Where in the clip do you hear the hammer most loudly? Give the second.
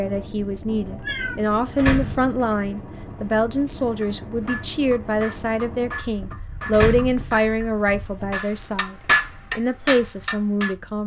9 s.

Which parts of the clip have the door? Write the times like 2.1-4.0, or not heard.
1.8-2.4, 6.7-7.5.